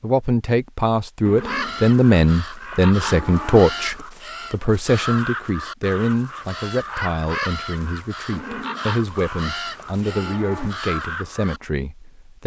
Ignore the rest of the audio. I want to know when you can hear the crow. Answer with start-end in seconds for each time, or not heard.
1.4-11.6.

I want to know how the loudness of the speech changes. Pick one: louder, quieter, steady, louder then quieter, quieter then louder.
quieter.